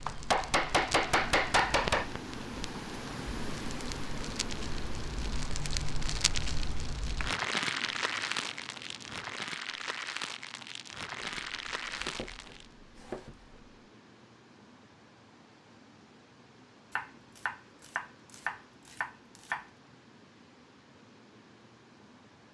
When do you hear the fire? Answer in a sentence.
The fire can be heard from 0.0 to 12.7 s.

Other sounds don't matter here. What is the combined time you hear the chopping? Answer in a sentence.
The chopping can be heard for 7 seconds in total.